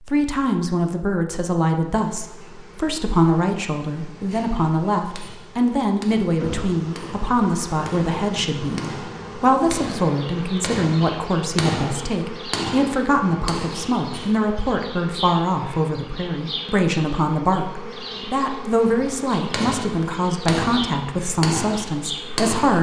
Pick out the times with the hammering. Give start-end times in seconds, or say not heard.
4.2-14.6, 19.1-22.7.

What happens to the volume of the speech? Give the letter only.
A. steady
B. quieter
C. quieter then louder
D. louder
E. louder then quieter
A.